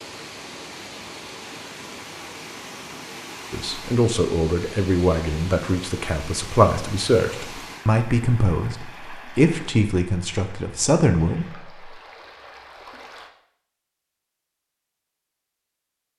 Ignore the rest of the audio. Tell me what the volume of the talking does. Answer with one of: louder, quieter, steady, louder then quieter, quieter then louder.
steady.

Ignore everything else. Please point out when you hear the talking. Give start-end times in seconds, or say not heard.
3.5-11.9.